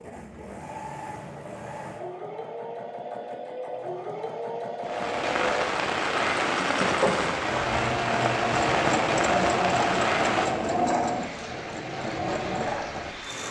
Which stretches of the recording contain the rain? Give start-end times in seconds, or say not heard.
4.8-13.4.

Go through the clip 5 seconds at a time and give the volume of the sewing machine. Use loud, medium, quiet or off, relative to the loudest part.
medium, loud, loud.